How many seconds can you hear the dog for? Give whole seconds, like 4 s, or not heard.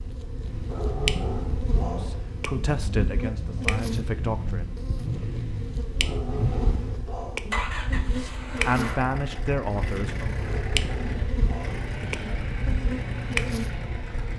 5 s.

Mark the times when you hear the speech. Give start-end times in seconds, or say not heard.
1.9-4.7, 8.1-10.3.